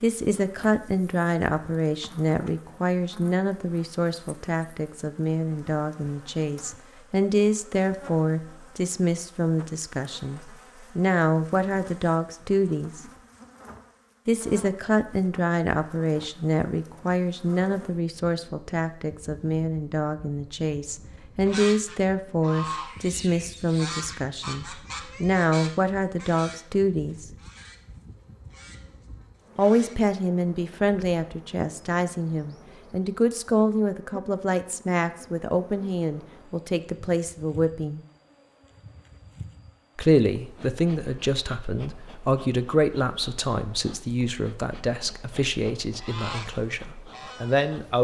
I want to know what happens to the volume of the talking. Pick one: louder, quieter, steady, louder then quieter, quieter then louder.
steady.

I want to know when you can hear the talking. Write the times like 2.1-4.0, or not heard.
0.0-13.0, 14.2-27.2, 29.6-38.0, 40.0-48.0.